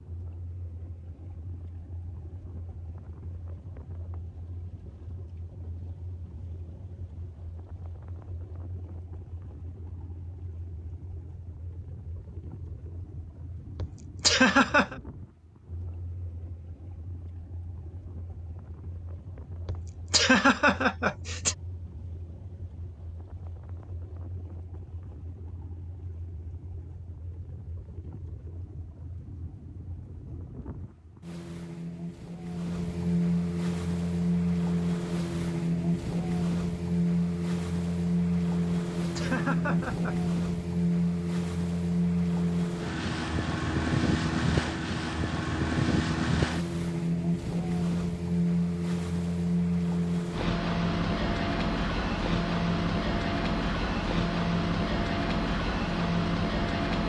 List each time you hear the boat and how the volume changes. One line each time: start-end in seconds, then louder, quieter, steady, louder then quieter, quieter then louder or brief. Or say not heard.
0.0-57.0 louder.